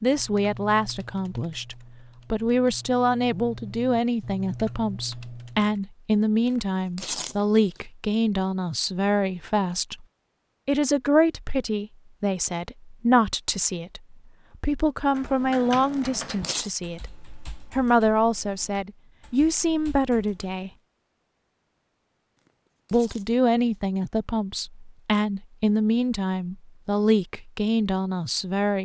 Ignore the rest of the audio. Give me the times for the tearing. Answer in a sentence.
You can hear the tearing from 6.5 to 7.8 s, from 15.9 to 16.7 s and from 22.4 to 23.2 s.